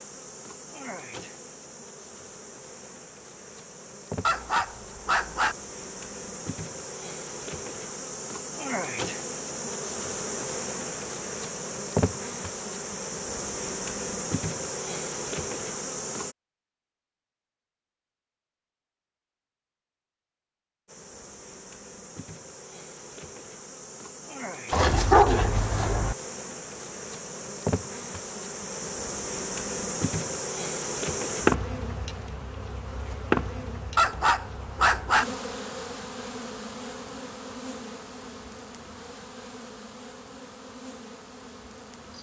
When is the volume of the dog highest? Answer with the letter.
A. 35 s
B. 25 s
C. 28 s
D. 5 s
B.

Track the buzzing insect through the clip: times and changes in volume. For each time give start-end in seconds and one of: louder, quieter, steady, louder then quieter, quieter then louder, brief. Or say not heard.
0.0-16.4 louder
20.9-42.1 louder then quieter.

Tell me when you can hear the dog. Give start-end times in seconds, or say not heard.
4.2-5.5, 24.7-26.1, 34.0-35.2.